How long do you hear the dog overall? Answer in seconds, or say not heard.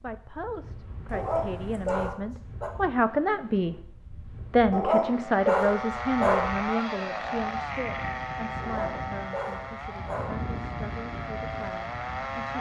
5 s.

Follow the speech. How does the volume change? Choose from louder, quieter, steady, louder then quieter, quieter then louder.
louder then quieter.